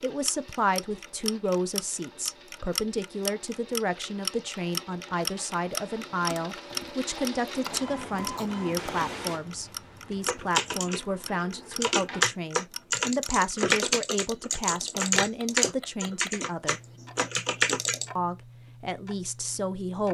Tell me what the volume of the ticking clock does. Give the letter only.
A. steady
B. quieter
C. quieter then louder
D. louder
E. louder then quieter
B.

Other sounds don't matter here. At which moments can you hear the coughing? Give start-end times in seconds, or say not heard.
7.7-8.5.